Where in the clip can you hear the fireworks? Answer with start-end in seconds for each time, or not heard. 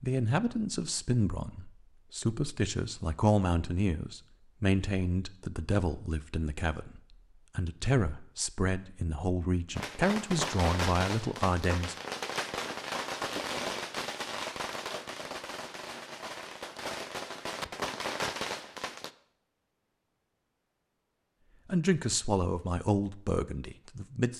9.8-19.1.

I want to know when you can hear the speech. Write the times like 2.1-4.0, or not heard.
0.0-11.9, 21.6-24.3.